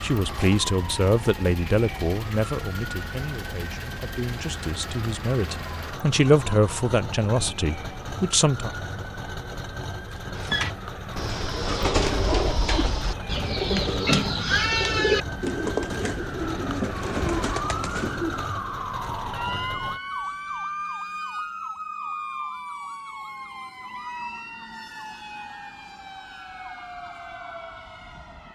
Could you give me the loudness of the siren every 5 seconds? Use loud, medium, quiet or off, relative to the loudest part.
medium, medium, medium, loud, loud, medium.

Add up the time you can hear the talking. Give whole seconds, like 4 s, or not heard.
9 s.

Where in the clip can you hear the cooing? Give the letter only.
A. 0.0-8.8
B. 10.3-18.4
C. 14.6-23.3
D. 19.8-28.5
B.